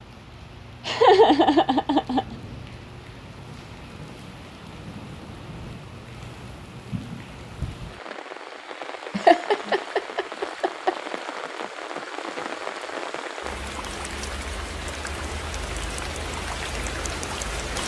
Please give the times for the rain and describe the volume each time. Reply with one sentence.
The rain can be heard from 0.0 to 17.8 s, getting louder.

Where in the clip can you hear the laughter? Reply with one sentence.
You can hear the laughter from 0.8 to 2.4 s and from 9.2 to 10.9 s.